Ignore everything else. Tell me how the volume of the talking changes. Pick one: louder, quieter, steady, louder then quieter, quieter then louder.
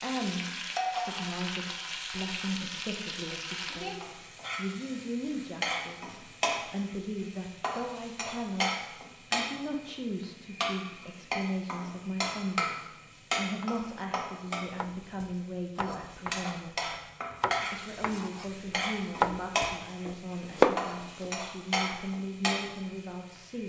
steady.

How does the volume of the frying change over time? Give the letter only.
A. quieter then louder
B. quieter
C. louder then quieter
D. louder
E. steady
E.